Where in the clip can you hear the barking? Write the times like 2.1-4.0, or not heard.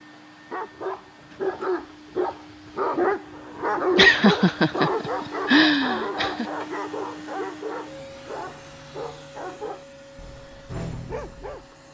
0.5-11.7.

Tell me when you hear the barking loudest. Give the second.
4 s.